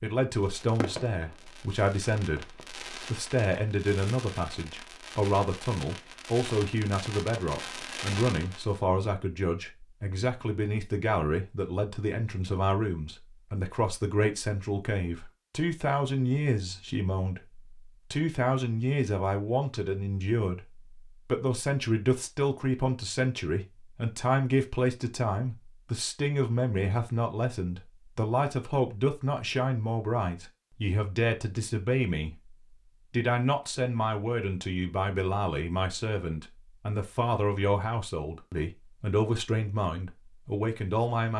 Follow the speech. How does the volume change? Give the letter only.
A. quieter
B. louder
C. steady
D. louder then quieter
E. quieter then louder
C.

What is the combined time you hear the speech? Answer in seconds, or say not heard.
41 s.